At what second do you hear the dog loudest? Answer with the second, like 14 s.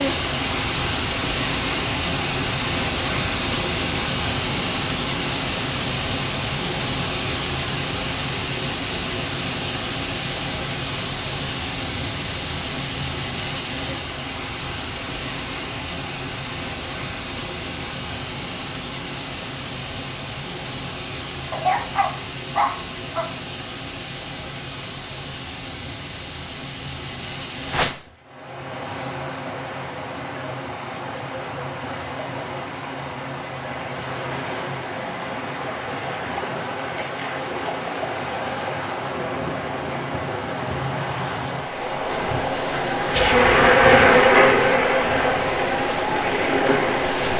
22 s.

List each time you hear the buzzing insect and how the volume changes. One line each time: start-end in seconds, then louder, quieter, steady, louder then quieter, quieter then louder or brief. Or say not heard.
42.0-47.3 louder then quieter.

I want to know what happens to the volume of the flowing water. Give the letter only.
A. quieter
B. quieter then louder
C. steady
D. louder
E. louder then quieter
B.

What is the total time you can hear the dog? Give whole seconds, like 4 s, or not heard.
2 s.